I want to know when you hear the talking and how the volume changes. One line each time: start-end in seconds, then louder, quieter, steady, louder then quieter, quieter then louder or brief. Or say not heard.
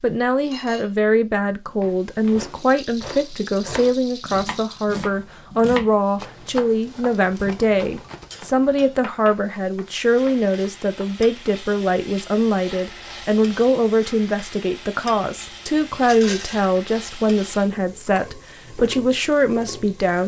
0.0-20.2 steady.